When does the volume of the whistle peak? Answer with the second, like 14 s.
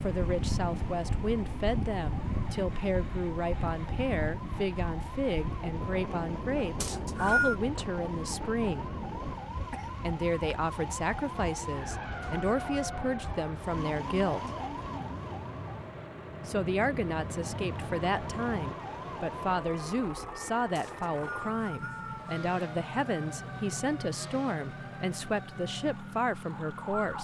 7 s.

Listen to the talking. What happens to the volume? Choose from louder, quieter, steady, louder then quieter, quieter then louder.
steady.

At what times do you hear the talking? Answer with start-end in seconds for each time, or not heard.
0.0-8.9, 10.0-14.5, 16.4-27.1.